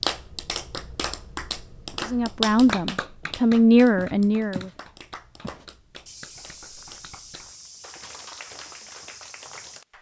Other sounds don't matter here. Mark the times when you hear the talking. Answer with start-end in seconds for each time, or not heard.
2.0-4.7.